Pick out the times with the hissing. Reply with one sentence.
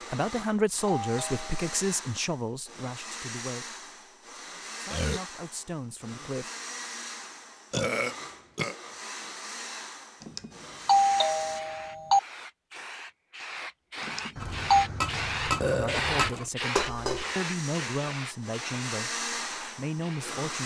The hissing can be heard from 11.1 to 20.4 s.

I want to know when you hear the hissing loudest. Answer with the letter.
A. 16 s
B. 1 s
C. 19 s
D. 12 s
A.